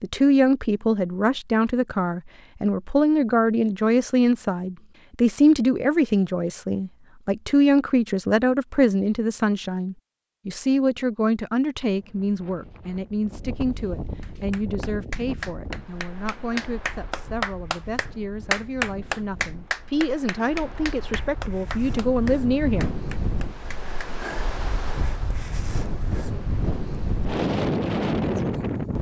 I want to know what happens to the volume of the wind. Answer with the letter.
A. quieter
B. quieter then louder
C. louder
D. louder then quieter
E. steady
B.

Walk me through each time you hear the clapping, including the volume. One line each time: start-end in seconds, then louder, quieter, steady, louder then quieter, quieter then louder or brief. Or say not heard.
14.2-24.1 louder then quieter.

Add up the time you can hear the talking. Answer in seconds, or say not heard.
23 s.